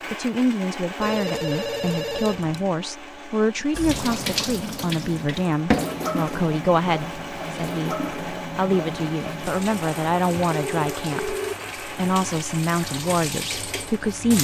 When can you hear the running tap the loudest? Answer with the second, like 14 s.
6 s.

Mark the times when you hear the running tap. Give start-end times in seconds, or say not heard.
3.7-14.3.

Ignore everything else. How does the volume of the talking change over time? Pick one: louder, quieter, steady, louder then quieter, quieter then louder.
steady.